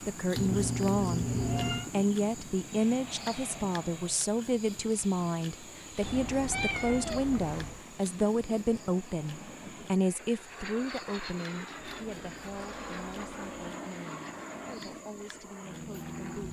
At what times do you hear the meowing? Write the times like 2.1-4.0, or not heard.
0.3-1.9, 6.0-7.8, 11.8-13.7.